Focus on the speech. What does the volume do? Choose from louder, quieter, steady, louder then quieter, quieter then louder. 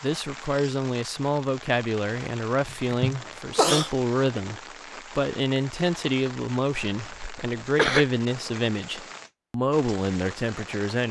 steady.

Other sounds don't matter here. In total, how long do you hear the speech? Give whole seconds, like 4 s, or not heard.
11 s.